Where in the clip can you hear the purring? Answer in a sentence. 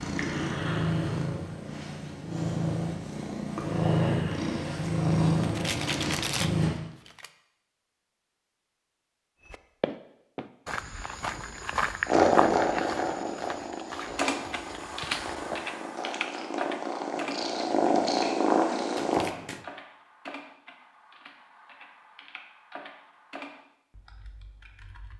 The purring can be heard from 0.0 to 6.8 s and from 12.1 to 19.2 s.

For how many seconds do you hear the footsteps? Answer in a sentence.
You can hear the footsteps for 6 seconds altogether.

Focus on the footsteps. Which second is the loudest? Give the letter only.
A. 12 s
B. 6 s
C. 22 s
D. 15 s
A.